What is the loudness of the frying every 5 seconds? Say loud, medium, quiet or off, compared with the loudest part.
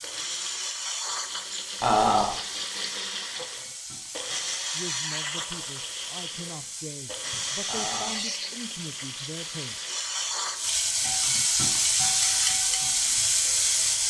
quiet, quiet, loud.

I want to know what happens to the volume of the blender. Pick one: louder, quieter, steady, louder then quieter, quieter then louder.
quieter.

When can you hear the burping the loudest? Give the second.
2 s.